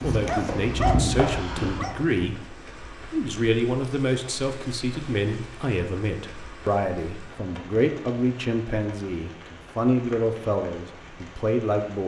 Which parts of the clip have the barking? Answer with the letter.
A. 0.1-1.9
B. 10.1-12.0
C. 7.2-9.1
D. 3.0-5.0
A.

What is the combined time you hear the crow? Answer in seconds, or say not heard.
not heard.